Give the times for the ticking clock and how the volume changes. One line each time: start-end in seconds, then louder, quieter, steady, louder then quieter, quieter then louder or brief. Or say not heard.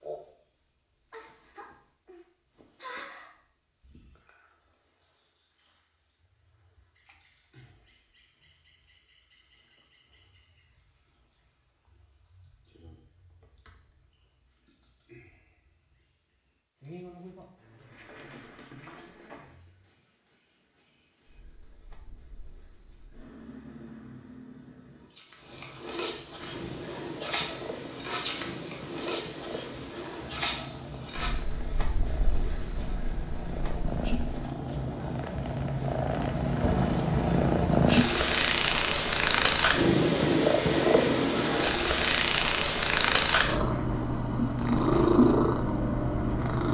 not heard.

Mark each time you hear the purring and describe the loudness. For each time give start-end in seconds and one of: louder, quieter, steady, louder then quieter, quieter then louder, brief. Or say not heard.
26.4-46.6 louder.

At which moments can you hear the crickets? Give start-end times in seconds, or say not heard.
0.0-34.5.